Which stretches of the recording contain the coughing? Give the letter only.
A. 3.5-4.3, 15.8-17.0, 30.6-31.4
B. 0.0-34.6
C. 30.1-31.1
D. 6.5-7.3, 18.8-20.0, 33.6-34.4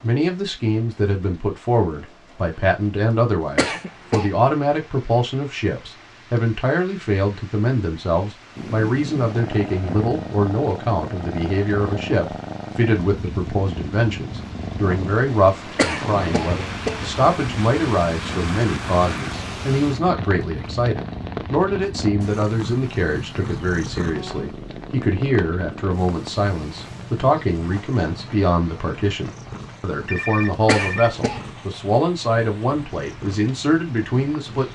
A.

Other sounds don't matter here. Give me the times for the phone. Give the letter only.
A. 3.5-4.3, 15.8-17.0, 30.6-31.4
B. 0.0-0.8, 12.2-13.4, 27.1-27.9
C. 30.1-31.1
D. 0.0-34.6
C.